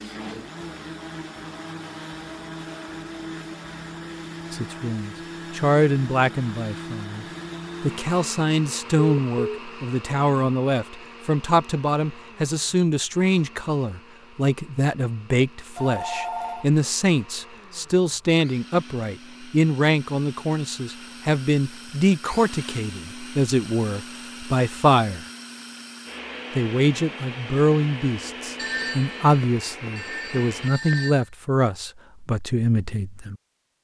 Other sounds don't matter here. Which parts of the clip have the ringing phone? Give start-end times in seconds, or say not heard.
8.9-9.6, 15.8-16.6, 28.6-31.2.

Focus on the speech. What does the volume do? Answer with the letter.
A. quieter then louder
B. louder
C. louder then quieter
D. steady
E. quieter
D.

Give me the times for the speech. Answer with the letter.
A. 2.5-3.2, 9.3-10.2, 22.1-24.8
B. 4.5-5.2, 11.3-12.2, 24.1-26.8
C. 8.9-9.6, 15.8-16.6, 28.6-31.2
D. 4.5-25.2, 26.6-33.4
D.